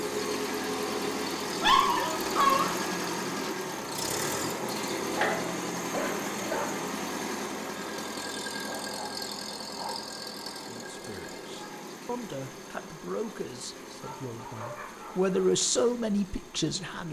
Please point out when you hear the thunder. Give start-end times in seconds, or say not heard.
not heard.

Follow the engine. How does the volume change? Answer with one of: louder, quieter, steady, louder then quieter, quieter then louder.
quieter.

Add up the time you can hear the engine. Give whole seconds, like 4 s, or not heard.
17 s.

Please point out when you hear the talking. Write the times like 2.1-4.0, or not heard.
10.6-17.0.